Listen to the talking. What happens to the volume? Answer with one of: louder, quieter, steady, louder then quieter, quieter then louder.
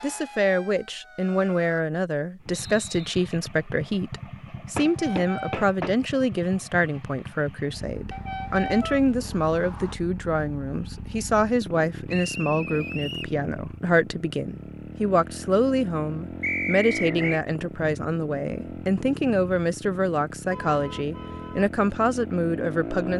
steady.